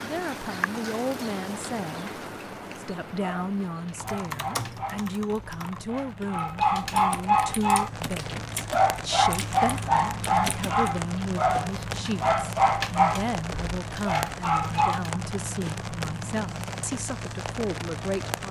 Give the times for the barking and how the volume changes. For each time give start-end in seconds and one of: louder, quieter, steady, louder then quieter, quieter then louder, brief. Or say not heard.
3.1-15.2 louder.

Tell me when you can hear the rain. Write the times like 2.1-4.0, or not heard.
0.0-18.4.